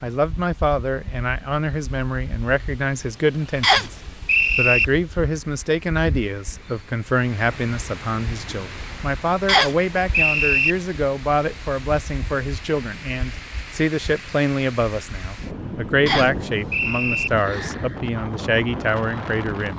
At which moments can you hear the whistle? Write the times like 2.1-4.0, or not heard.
3.6-4.8, 9.4-10.8, 16.1-17.3.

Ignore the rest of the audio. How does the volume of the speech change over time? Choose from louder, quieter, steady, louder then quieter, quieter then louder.
steady.